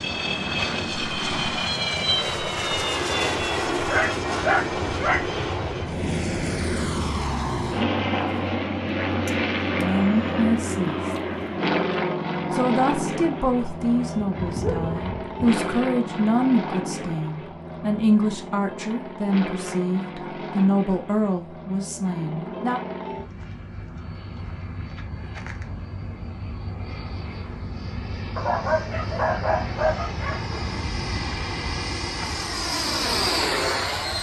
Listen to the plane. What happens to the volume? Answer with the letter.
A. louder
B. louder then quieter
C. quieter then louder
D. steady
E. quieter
C.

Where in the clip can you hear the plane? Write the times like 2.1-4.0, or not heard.
0.0-34.1.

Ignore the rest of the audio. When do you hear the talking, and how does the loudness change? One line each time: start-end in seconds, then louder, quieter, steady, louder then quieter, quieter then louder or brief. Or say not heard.
9.8-11.0 brief
12.5-22.8 steady.